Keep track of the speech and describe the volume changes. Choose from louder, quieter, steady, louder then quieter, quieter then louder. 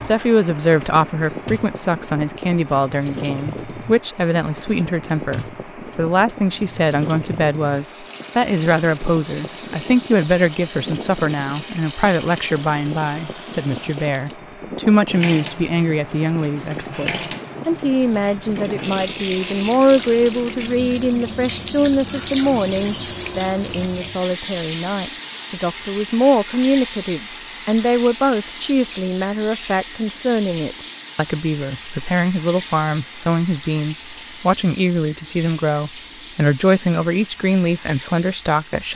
steady.